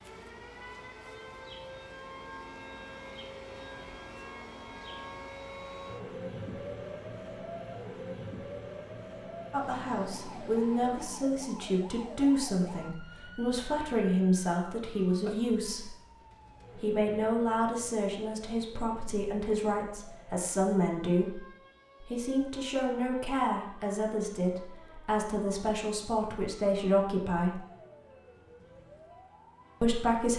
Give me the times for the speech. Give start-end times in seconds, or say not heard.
9.5-15.9, 16.8-21.4, 22.0-27.6, 29.8-30.3.